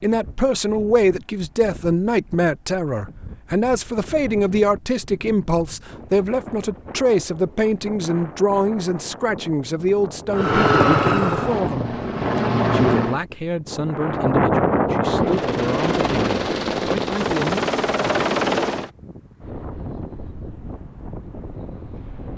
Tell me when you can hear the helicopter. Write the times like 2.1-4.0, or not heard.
10.3-13.2, 15.1-18.9.